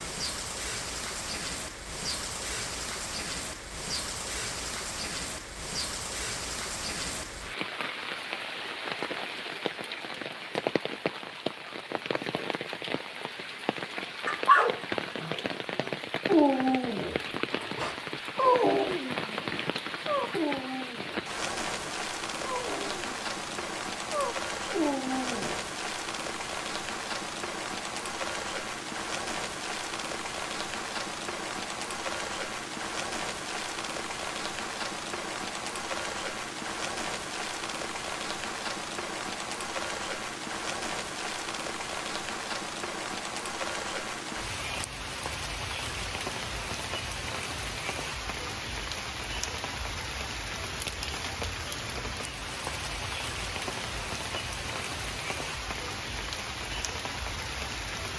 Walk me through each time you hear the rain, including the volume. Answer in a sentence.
You can hear the rain from 0.0 to 58.1 s, at a steady volume.